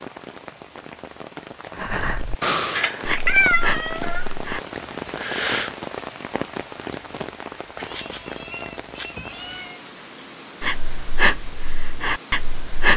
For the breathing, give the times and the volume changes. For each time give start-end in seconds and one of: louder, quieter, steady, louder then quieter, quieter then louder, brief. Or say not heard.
1.8-5.8 quieter
10.6-12.9 brief.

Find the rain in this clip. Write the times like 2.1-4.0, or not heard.
0.0-12.9.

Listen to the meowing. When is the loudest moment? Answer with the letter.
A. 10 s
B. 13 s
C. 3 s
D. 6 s
C.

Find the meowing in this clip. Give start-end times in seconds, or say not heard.
2.8-4.2, 7.8-9.8.